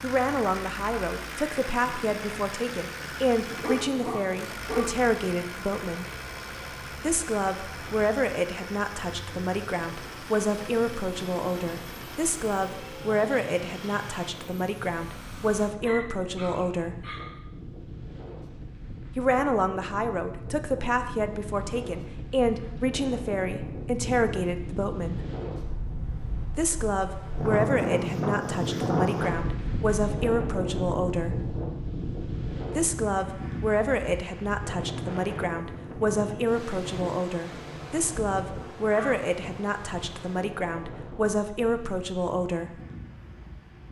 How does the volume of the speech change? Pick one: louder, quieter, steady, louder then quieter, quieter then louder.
steady.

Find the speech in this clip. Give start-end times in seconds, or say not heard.
0.0-6.0, 7.0-17.1, 19.1-25.2, 26.6-31.4, 32.8-42.8.